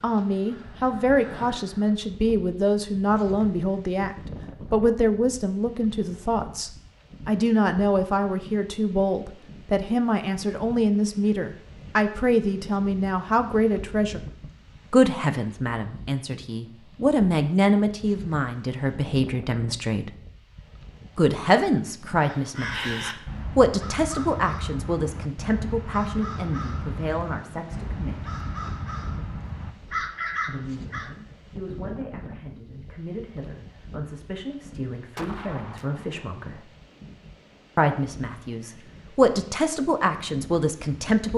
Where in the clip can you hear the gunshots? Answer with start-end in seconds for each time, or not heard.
34.6-36.6.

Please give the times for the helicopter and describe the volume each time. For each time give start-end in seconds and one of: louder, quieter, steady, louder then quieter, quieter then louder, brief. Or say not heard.
not heard.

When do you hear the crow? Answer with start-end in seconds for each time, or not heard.
0.1-2.0, 22.2-31.1.